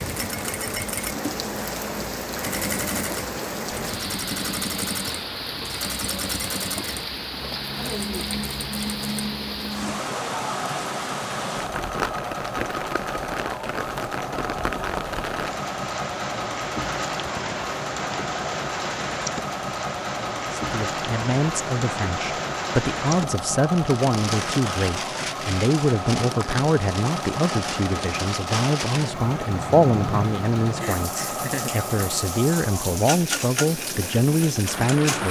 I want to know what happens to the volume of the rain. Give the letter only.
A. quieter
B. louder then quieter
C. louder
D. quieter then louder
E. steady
E.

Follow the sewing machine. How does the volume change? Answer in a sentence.
The loudness of the sewing machine stays about the same.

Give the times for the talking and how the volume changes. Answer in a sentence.
You can hear the talking from 20.6 to 35.2 s, at a steady volume.